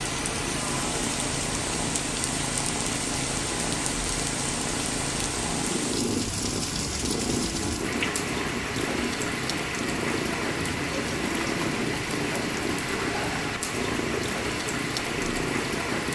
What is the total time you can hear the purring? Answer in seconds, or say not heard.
16 s.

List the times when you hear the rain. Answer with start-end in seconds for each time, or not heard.
0.0-16.1.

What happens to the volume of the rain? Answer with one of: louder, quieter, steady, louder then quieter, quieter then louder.
steady.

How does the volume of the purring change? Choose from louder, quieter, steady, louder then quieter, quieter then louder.
steady.